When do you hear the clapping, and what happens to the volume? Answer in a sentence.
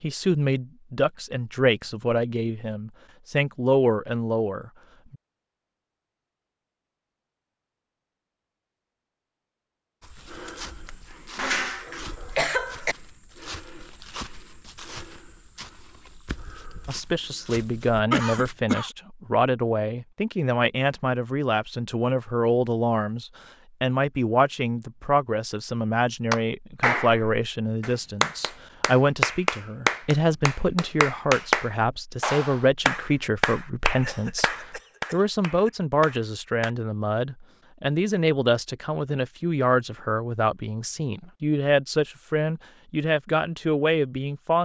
The clapping can be heard from 26.3 to 36.7 s, getting quieter.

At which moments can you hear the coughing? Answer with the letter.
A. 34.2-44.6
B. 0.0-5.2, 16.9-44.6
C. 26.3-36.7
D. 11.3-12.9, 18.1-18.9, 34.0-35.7
D.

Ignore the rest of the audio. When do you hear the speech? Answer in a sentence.
The speech can be heard from 0.0 to 5.2 s and from 16.9 to 44.6 s.